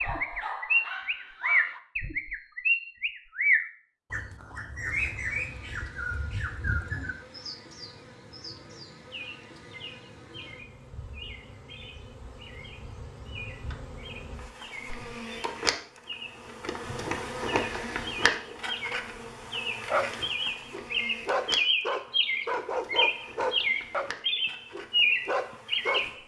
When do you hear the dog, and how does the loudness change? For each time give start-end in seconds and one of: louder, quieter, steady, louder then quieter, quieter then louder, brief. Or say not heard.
0.0-1.8 brief
19.9-24.1 louder
24.7-26.2 brief.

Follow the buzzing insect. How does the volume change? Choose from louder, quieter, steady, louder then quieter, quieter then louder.
louder then quieter.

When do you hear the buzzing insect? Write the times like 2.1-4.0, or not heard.
4.8-26.2.